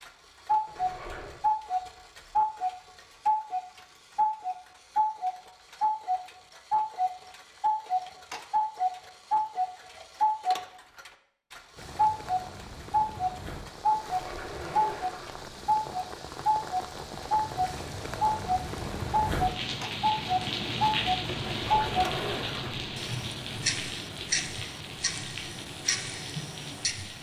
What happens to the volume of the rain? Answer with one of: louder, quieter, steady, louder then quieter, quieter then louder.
louder then quieter.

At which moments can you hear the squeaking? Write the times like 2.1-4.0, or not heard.
0.7-1.4, 13.9-15.4, 21.4-22.8.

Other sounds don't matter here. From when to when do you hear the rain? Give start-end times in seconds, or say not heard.
11.8-27.1.